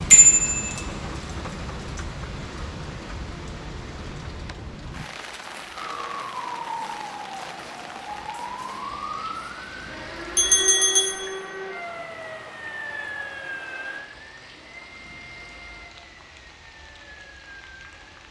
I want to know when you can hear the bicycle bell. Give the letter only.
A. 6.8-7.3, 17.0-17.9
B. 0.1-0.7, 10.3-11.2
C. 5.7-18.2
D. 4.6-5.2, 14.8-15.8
B.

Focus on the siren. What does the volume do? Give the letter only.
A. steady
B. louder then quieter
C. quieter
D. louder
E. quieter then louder
C.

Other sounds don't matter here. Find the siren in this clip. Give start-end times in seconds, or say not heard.
5.7-18.2.